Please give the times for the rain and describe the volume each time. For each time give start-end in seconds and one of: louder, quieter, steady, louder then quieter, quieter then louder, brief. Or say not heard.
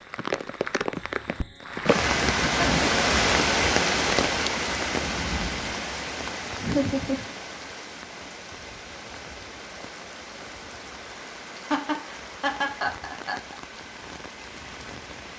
0.0-15.3 quieter.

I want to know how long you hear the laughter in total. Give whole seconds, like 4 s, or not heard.
3 s.